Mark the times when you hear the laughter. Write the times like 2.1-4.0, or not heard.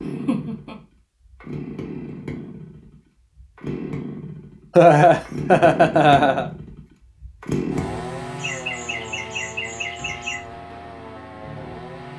0.1-0.8, 4.8-6.5, 8.3-10.3.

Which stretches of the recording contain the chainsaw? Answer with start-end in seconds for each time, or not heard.
0.0-12.1.